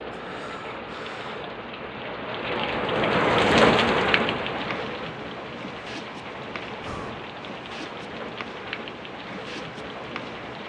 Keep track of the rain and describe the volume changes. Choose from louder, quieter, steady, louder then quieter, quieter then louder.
louder then quieter.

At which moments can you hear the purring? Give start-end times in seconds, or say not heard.
4.5-10.6.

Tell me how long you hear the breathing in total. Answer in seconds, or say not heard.
2 s.